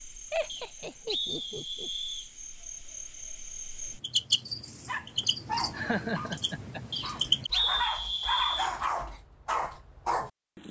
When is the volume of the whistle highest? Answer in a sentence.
The volume of the whistle peaks at 8 seconds.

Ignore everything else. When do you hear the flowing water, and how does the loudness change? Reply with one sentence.
You can't hear the flowing water here.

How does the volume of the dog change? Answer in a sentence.
The loudness of the dog goes down, then up.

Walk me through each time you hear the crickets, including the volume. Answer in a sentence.
You can hear the crickets from 0.0 to 7.5 s, getting louder then quieter.